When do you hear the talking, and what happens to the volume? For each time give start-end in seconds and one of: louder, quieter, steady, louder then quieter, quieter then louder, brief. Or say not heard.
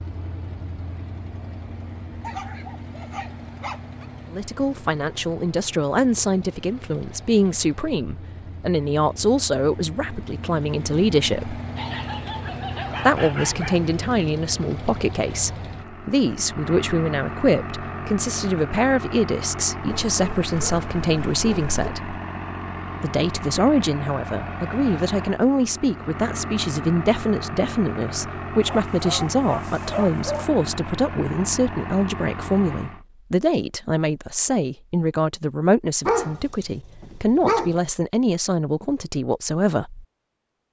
4.3-11.6 steady
13.1-22.2 steady
23.0-40.0 steady.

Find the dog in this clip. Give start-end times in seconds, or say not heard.
2.2-4.0, 11.8-13.9, 19.9-21.9, 28.6-30.4, 36.0-37.8.